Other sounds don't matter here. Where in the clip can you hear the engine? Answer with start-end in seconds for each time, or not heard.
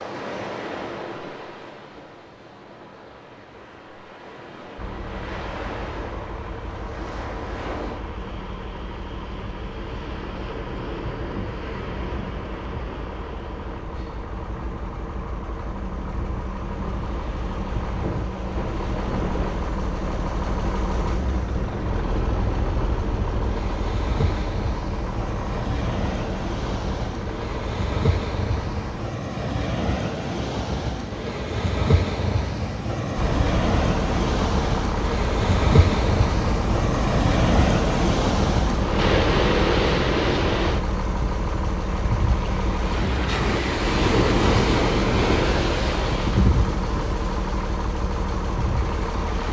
4.8-29.1, 33.1-49.4.